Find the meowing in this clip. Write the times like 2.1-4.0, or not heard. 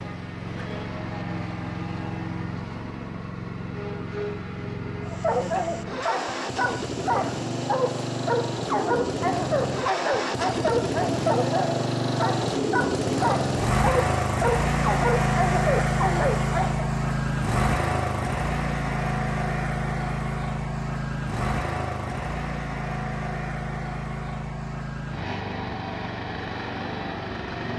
not heard.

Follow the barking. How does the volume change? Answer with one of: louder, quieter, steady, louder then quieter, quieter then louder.
steady.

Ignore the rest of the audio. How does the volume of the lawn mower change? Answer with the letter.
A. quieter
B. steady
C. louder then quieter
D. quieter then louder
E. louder
C.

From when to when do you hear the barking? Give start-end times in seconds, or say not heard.
5.0-16.9.